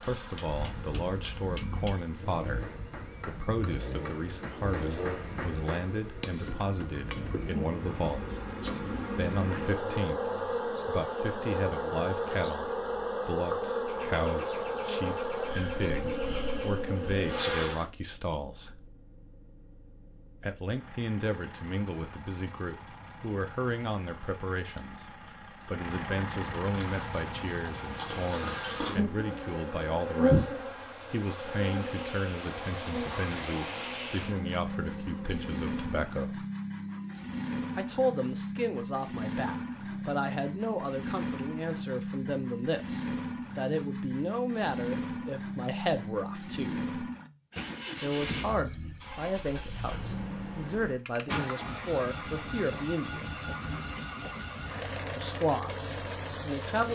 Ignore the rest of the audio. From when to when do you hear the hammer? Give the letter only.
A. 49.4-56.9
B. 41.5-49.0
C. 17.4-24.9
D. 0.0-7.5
D.